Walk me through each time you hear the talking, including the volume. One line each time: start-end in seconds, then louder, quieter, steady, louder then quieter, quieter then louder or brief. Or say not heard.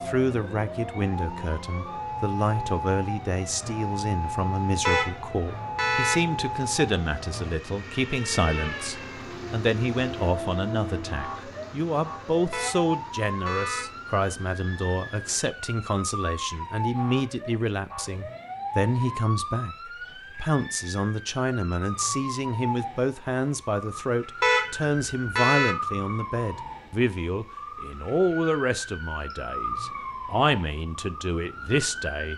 0.0-32.3 steady.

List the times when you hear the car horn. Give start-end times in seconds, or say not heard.
4.8-6.2, 12.5-13.9, 24.4-25.8.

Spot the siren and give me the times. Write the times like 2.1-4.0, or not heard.
0.0-32.3.